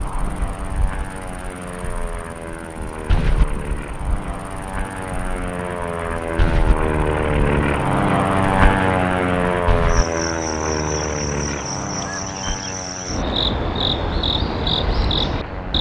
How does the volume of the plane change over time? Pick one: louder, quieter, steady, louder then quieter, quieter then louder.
louder then quieter.